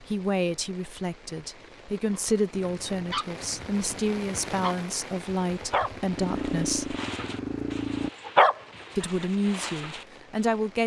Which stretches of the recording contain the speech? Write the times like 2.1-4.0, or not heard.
0.0-7.0, 8.9-10.8.